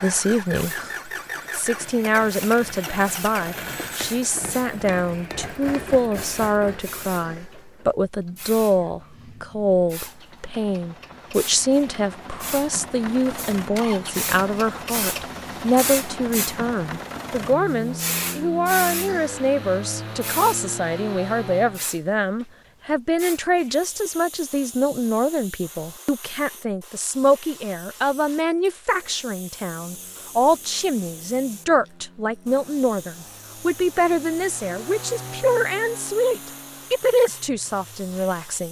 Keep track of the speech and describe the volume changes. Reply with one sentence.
The volume of the speech stays about the same.